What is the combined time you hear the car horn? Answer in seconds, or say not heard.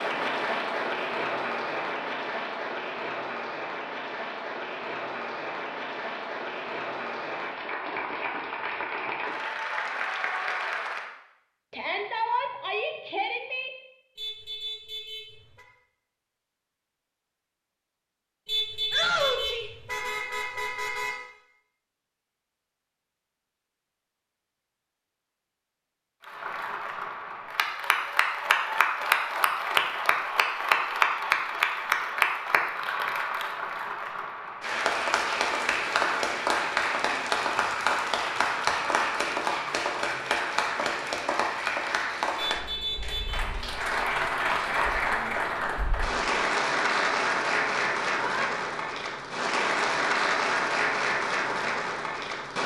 5 s.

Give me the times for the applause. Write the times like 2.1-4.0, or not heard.
0.0-11.1, 26.2-52.6.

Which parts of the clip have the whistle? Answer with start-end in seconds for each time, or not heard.
not heard.